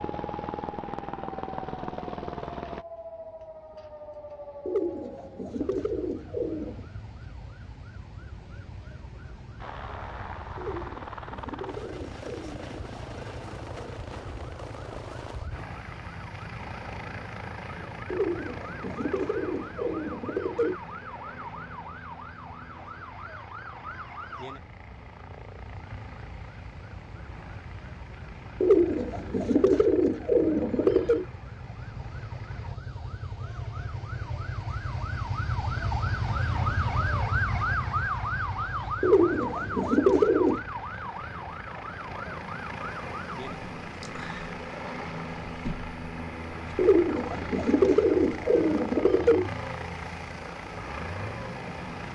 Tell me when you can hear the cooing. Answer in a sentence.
You can hear the cooing from 4.7 to 6.8 s, from 10.6 to 12.9 s, from 18.1 to 20.8 s, from 28.6 to 31.2 s, from 39.0 to 40.6 s and from 46.8 to 49.5 s.